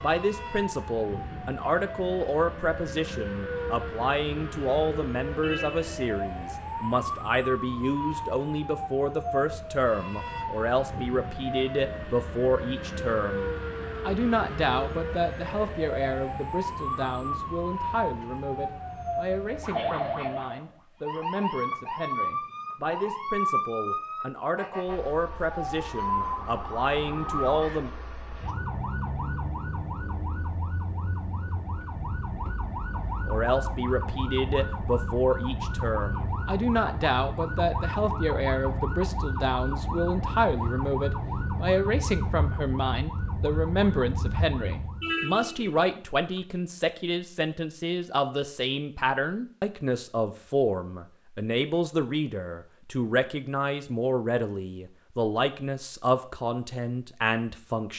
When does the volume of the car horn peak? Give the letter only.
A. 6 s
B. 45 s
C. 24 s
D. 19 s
B.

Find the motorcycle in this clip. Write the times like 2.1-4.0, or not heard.
not heard.